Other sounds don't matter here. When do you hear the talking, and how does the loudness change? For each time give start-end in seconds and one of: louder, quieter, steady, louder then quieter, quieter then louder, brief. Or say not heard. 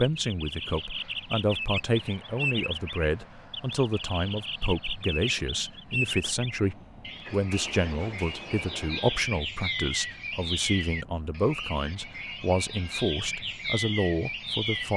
0.0-14.9 steady.